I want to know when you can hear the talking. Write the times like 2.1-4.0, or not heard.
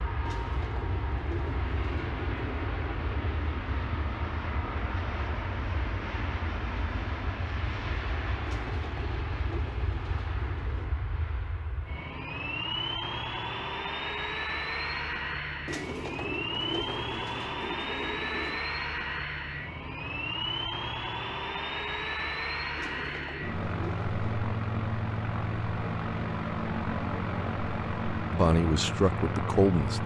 28.3-30.0.